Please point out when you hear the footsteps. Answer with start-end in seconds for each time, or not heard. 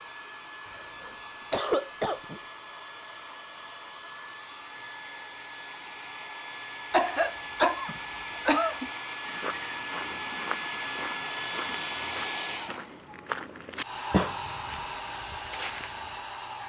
9.2-16.2.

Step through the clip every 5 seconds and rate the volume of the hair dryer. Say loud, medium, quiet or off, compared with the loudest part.
medium, loud, loud, loud.